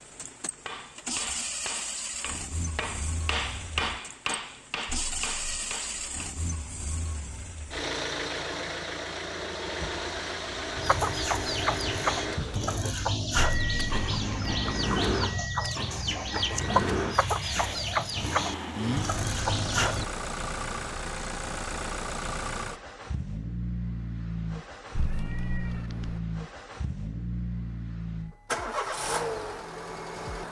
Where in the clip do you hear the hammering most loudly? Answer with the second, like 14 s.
4 s.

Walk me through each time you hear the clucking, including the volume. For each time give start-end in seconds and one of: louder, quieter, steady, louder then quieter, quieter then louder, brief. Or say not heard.
10.8-20.1 steady.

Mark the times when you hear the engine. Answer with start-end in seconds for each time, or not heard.
0.0-30.4.